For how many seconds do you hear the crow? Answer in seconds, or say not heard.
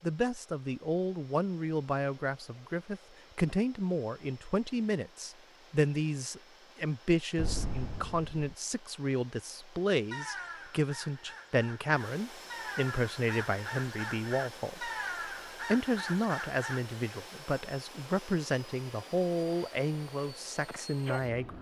7 s.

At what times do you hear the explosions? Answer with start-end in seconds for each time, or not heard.
7.3-8.6.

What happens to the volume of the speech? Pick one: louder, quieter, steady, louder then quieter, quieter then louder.
steady.